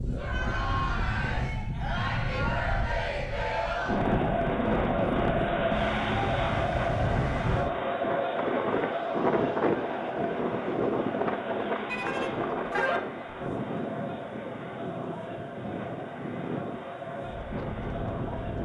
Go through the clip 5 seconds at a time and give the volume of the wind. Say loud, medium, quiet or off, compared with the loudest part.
loud, loud, loud, medium.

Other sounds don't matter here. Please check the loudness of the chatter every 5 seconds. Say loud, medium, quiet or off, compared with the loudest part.
loud, loud, medium, medium.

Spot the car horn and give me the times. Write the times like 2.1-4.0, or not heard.
11.8-13.0.